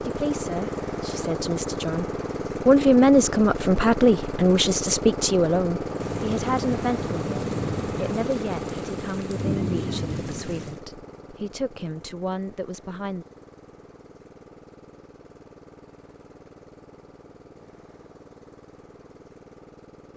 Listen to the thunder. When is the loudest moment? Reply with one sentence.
The volume of the thunder peaks at 10 seconds.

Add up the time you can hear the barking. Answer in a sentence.
You can't hear the barking here.